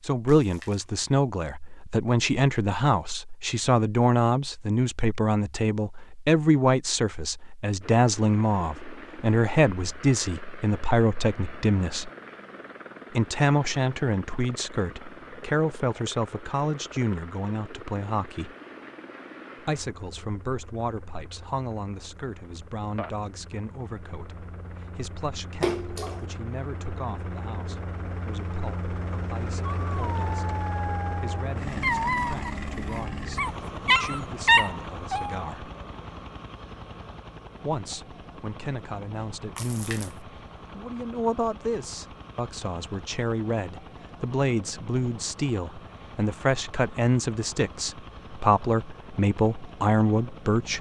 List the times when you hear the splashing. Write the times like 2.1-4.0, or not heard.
0.2-0.8, 25.6-26.2, 39.5-40.1.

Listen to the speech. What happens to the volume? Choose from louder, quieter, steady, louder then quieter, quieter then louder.
quieter then louder.